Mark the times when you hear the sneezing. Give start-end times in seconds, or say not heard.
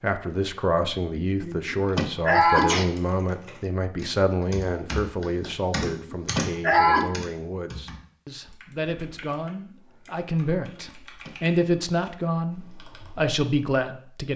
1.4-2.9, 5.8-7.1, 10.8-11.3.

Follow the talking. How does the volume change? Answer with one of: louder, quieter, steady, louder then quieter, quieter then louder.
quieter then louder.